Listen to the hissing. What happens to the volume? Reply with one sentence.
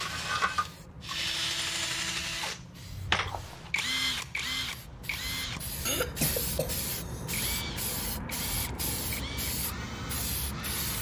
The volume of the hissing goes up.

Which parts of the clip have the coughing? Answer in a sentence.
You can hear the coughing from 5.8 to 7.2 s.